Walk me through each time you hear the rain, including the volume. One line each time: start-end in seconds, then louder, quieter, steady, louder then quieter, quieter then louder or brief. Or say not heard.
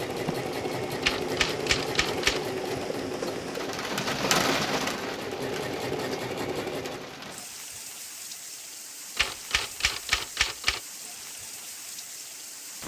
0.0-12.8 louder then quieter.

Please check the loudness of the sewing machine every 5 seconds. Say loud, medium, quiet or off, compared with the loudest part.
loud, loud, off.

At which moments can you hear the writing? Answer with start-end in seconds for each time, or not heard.
not heard.